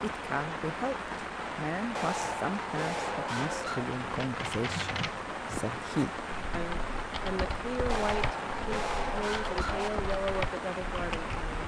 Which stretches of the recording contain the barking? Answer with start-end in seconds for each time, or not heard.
1.9-3.9, 7.8-9.9.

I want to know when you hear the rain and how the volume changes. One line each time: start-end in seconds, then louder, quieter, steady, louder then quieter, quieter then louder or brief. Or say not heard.
0.0-11.6 steady.